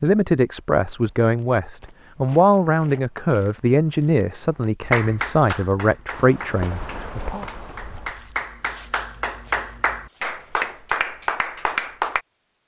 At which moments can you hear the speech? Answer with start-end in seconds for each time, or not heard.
0.0-7.5.